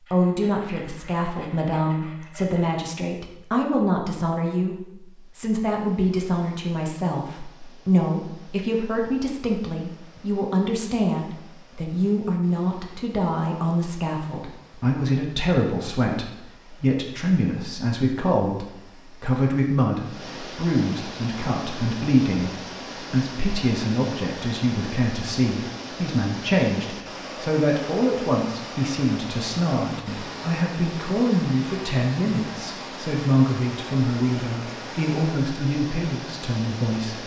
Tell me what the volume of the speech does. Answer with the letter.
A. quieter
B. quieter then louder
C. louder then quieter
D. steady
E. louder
D.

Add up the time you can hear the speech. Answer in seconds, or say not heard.
37 s.